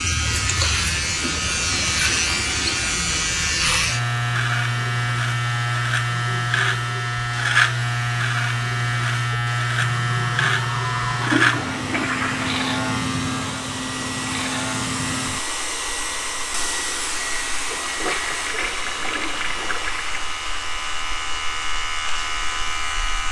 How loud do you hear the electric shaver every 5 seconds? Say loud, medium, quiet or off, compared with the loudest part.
loud, loud, loud, medium, medium.